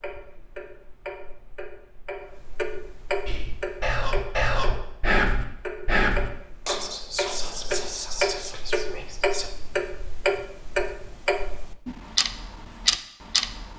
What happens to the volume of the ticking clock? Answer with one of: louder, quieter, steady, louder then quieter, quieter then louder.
louder.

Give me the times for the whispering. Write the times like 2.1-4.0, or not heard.
3.2-9.5.